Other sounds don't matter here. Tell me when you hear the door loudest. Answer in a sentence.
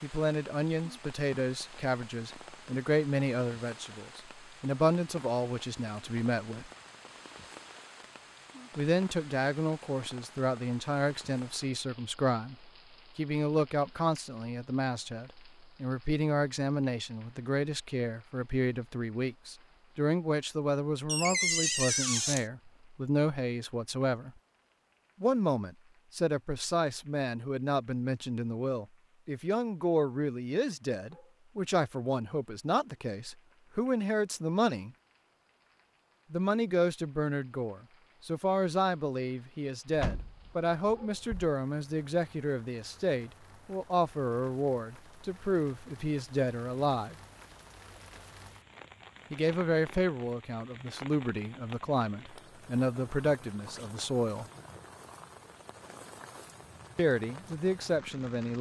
The loudest moment of the door is at 22 seconds.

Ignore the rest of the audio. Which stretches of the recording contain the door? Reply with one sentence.
The door can be heard from 21.1 to 22.4 s and from 39.9 to 41.5 s.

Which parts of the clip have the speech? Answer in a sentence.
You can hear the speech from 0.0 to 6.7 s, from 8.8 to 24.3 s, from 25.2 to 34.9 s, from 36.3 to 47.1 s, from 49.3 to 54.5 s and from 57.0 to 58.5 s.